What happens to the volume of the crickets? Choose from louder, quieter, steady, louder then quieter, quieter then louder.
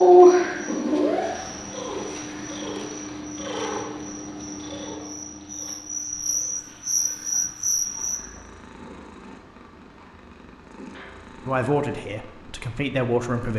louder.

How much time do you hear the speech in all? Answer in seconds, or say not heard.
2 s.